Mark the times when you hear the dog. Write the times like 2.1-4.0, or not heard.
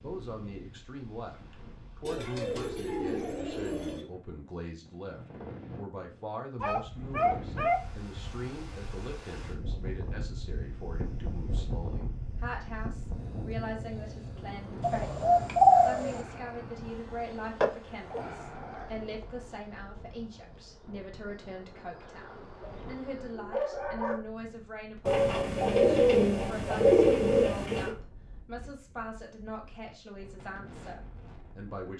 6.5-7.8, 22.6-24.2.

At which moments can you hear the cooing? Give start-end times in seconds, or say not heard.
2.0-4.0, 14.8-16.2, 25.1-27.9.